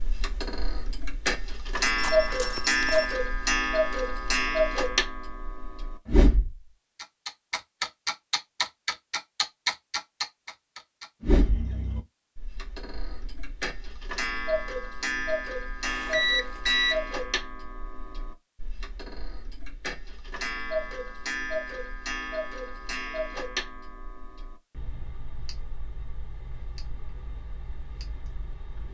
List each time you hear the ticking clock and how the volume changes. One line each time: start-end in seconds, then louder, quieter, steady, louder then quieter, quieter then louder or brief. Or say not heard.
0.0-28.8 quieter.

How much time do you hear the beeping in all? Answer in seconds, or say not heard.
2 s.